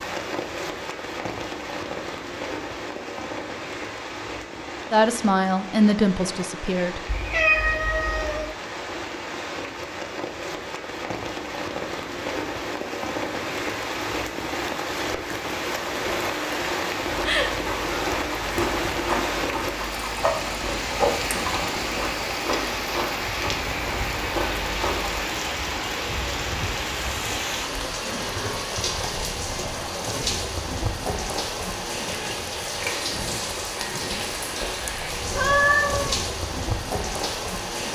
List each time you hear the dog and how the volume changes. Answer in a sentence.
The dog can't be heard in this clip.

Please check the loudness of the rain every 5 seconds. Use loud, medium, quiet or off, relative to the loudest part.
medium, medium, loud, loud, loud, loud, loud, loud.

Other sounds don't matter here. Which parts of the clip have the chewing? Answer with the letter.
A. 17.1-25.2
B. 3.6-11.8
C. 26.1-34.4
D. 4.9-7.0
A.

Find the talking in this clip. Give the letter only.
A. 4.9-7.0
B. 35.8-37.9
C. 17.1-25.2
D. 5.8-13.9
A.